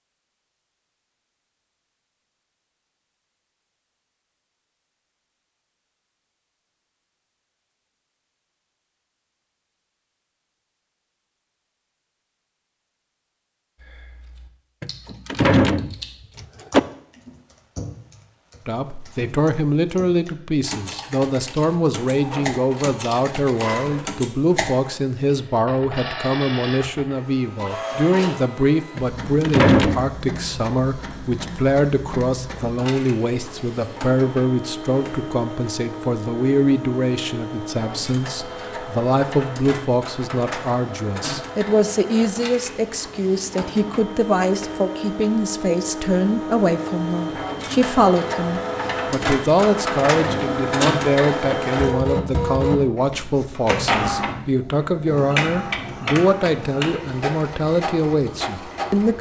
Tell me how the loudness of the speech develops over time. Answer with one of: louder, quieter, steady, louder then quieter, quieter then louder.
steady.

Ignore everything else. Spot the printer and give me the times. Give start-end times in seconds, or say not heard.
21.9-59.1.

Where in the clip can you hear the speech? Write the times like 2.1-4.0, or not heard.
18.6-59.1.